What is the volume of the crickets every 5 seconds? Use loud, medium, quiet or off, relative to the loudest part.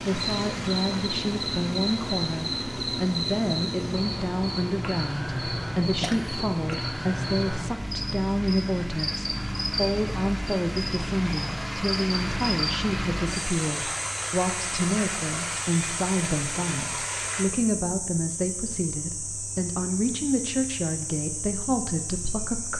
loud, loud, loud, medium, medium.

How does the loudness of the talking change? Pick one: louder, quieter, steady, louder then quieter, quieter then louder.
steady.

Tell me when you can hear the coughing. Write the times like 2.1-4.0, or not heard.
6.0-6.8.